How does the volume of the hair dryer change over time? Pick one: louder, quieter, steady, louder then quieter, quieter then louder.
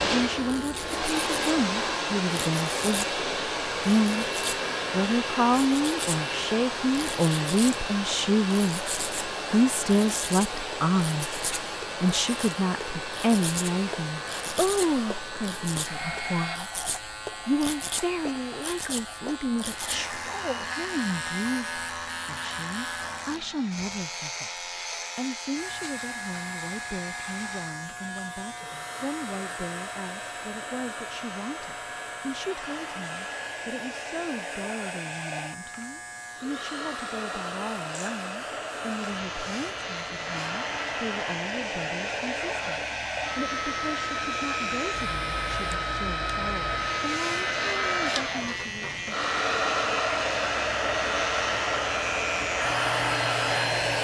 quieter then louder.